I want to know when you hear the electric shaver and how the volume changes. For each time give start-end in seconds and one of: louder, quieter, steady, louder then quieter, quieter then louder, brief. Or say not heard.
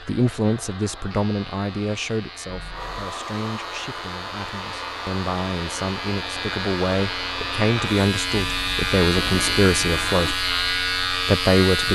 0.0-11.9 louder.